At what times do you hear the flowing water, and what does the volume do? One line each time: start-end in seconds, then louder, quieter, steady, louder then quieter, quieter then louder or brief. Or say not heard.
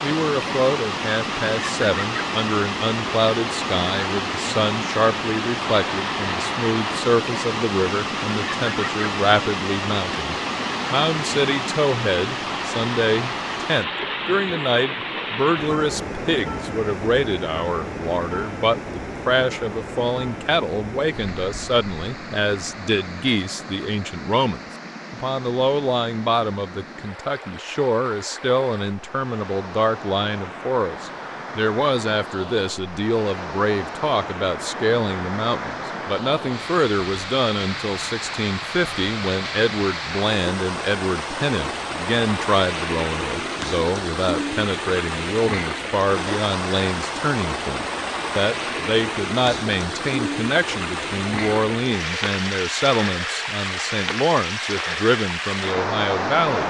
0.0-56.6 quieter then louder.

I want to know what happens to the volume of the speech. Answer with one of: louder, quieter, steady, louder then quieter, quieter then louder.
steady.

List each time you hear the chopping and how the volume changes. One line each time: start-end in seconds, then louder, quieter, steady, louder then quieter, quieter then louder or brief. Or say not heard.
not heard.